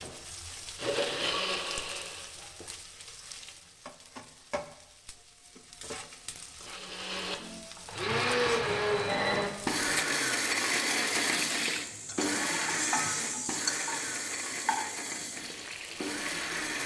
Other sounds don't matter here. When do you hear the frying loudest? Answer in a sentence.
The loudest moment of the frying is at 13 seconds.